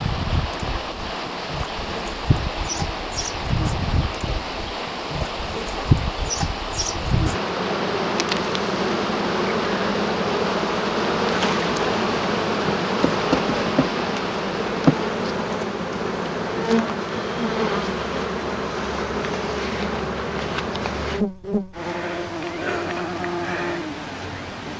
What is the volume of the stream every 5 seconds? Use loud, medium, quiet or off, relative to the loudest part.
loud, loud, loud, off, off.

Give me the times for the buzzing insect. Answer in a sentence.
You can hear the buzzing insect from 0.0 to 24.7 s.